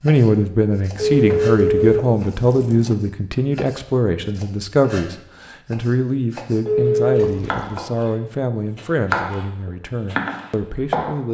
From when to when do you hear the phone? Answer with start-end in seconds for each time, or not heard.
0.9-2.0, 6.7-7.4.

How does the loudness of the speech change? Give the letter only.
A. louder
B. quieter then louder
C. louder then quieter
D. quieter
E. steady
D.